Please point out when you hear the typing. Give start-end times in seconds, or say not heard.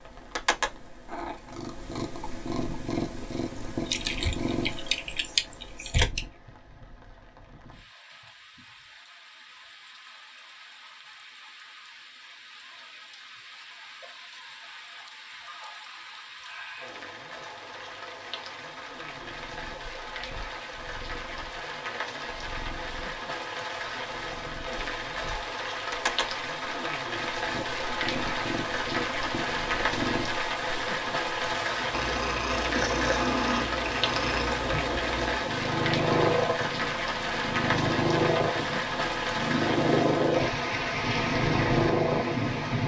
3.9-6.2.